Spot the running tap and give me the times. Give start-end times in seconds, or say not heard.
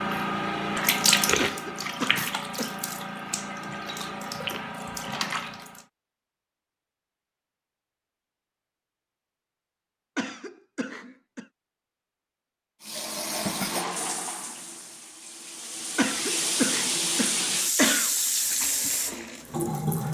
0.0-5.8, 12.8-20.0.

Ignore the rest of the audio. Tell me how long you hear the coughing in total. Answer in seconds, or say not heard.
5 s.